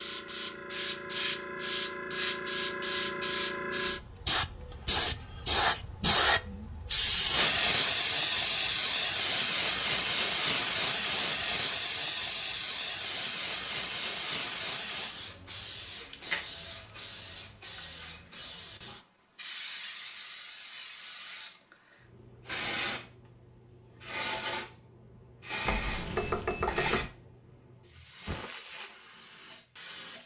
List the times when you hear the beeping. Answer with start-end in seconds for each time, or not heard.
25.6-27.0.